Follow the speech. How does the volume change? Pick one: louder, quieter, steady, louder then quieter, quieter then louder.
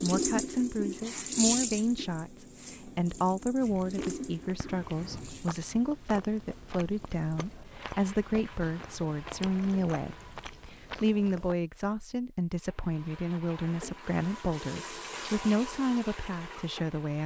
steady.